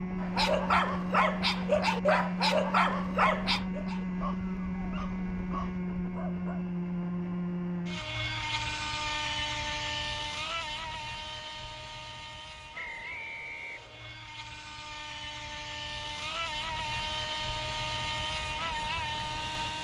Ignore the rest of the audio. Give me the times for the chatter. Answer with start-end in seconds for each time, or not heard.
not heard.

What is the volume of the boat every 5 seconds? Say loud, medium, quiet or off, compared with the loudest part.
loud, loud, medium, loud.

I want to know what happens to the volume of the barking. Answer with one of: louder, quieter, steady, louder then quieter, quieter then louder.
quieter.